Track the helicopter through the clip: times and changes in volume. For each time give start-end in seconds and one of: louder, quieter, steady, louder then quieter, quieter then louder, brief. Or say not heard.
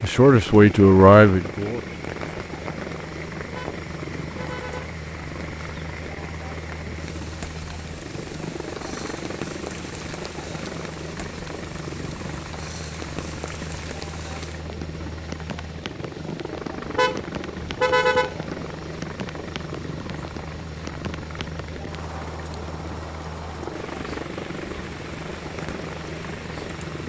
0.0-27.0 steady.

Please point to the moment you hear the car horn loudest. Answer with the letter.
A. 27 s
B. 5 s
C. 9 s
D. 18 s
D.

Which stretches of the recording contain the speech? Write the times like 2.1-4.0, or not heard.
0.0-1.8.